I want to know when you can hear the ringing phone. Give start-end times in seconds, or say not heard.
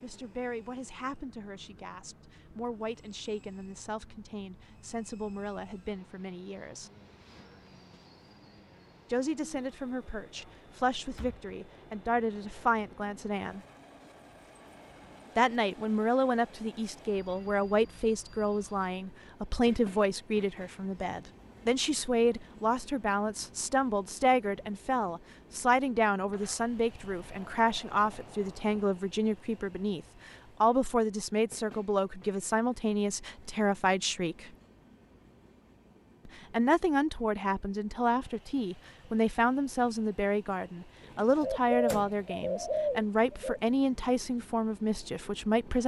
not heard.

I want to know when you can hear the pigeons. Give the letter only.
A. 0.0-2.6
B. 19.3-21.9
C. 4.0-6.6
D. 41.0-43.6
D.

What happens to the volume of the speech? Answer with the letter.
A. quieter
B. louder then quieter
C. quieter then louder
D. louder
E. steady
D.